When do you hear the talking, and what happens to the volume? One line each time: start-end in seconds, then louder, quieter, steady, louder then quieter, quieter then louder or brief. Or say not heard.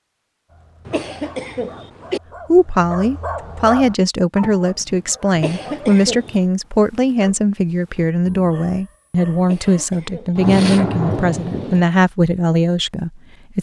2.5-13.5 steady.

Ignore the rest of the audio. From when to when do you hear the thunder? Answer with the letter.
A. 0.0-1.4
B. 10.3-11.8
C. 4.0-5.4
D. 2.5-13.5
B.